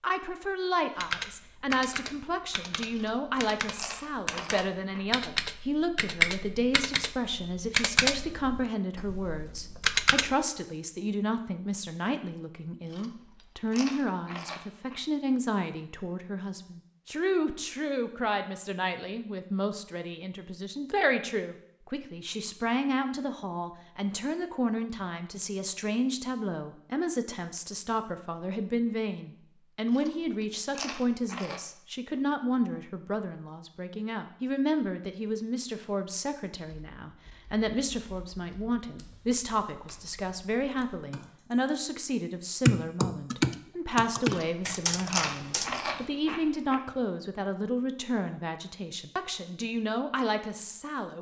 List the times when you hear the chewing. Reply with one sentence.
You can hear the chewing from 2.9 to 5.0 s, from 12.8 to 15.0 s, from 29.9 to 31.6 s and from 44.2 to 46.8 s.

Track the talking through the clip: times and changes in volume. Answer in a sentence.
You can hear the talking from 0.0 to 51.1 s, at a steady volume.